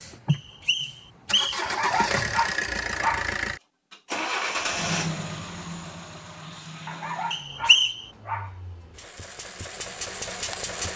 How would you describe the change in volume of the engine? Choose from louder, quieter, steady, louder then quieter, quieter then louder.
quieter then louder.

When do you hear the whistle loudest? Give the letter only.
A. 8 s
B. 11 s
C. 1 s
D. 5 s
A.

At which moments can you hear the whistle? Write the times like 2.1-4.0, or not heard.
0.3-1.8, 7.3-8.0.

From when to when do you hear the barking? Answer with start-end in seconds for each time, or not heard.
1.6-3.3, 6.8-8.6.